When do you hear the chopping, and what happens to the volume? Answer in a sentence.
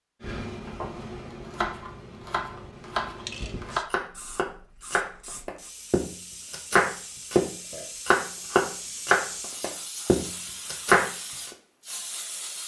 You can hear the chopping from 0.2 to 11.5 s, getting louder.